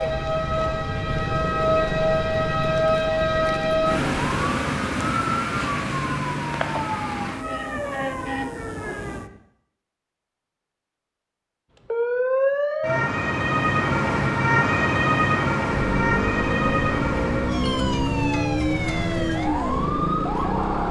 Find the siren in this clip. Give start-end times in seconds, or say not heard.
0.0-9.4, 11.8-20.8.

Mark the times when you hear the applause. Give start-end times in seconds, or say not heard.
not heard.